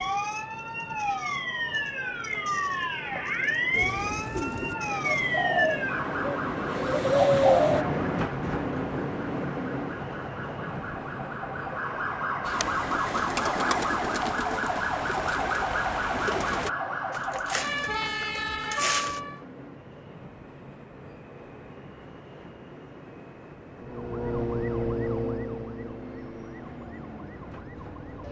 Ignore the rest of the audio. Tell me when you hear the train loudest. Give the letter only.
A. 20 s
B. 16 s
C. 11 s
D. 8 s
D.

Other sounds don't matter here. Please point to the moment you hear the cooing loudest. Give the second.
7 s.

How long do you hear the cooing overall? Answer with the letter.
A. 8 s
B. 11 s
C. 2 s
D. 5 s
B.